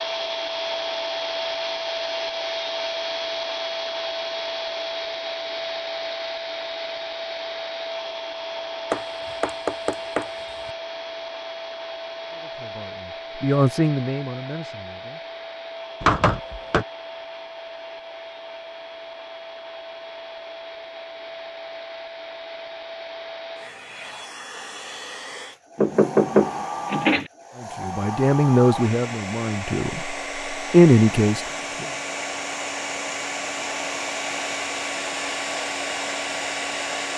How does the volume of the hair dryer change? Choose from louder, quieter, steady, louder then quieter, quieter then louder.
quieter then louder.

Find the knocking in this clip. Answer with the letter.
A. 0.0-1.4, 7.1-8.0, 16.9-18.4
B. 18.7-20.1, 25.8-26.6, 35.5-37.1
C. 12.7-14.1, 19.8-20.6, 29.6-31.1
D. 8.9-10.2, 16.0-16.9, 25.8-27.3
D.